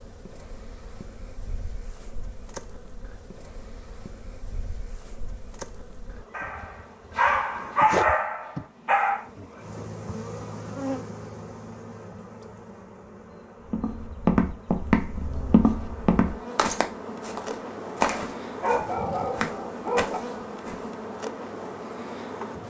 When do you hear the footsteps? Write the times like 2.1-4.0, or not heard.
13.7-20.9.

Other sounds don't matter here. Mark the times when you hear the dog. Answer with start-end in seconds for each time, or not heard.
6.3-9.2, 18.6-20.2.